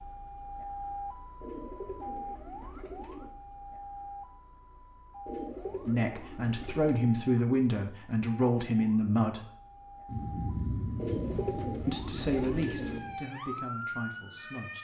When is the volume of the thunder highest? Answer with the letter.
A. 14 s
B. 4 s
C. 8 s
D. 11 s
D.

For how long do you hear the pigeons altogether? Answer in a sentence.
You can hear the pigeons for 6 seconds altogether.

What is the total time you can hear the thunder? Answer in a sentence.
You can hear the thunder for 3 seconds altogether.